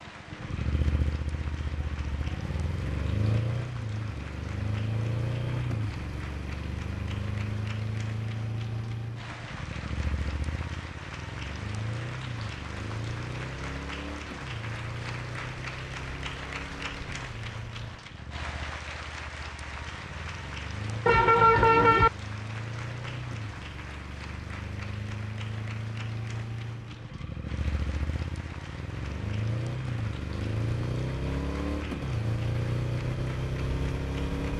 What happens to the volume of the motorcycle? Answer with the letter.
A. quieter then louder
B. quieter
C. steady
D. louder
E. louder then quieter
A.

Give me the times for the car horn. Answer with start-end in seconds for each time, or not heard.
21.1-22.1.